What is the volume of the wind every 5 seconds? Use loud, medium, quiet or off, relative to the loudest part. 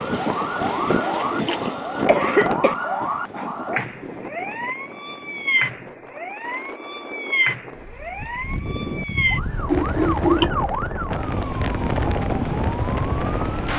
loud, medium, loud.